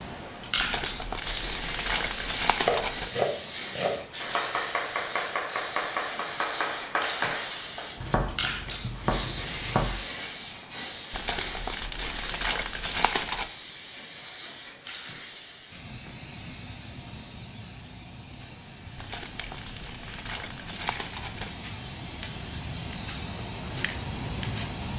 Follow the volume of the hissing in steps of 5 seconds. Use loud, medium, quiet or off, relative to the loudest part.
loud, loud, loud, medium, loud.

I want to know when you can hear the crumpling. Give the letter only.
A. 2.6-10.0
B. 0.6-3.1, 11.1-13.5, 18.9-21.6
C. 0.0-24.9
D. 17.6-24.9
B.